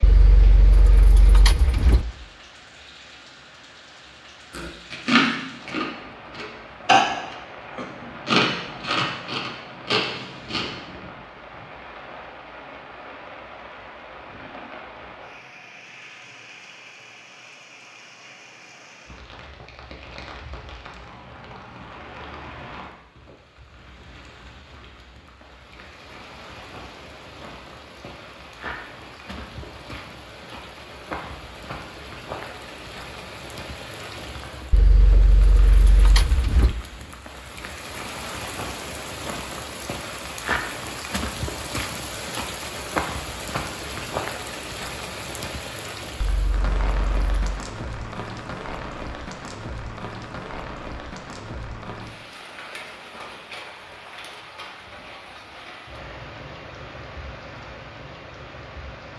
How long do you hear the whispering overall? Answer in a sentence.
The whispering can't be heard in this clip.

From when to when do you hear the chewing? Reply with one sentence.
The chewing can be heard from 4.5 to 10.7 s.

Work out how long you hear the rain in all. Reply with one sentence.
The rain can be heard for 59 seconds in total.